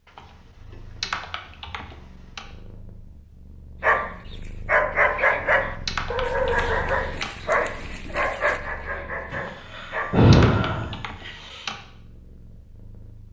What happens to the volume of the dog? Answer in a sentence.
The loudness of the dog goes down.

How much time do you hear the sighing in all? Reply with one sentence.
You can hear the sighing for 2 seconds altogether.